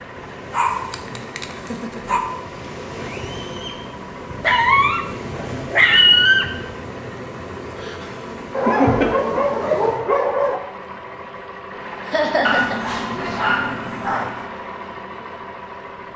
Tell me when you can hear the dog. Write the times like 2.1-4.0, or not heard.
0.5-2.2, 4.4-6.5, 8.5-10.6, 12.4-14.5.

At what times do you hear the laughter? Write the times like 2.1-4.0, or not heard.
1.6-2.2, 7.8-9.1, 12.1-13.4.